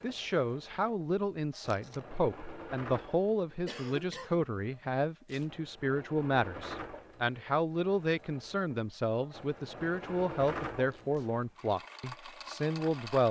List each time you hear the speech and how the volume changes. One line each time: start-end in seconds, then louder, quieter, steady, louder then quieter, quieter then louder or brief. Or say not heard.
0.0-13.2 steady.